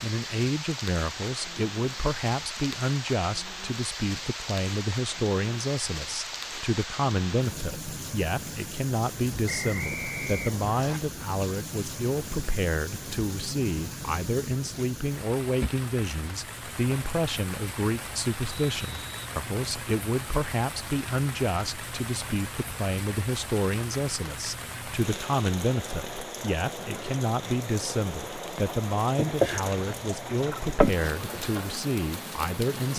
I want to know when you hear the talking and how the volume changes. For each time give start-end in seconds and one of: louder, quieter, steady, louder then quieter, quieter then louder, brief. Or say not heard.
0.0-32.9 steady.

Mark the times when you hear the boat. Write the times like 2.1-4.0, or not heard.
29.1-31.4.